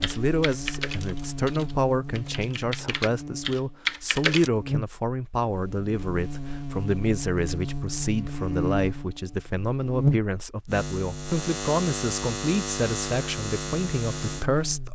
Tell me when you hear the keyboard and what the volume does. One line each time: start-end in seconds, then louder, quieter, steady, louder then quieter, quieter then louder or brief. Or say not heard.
0.0-4.5 quieter then louder.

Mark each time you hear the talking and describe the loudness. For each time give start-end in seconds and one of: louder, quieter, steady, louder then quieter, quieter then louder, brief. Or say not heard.
0.0-14.8 steady.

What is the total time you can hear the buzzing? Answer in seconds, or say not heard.
15 s.